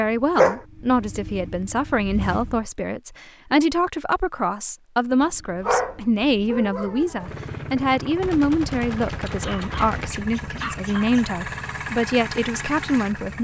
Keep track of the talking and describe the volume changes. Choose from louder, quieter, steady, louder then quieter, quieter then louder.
steady.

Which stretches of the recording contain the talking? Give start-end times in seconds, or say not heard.
0.0-13.3.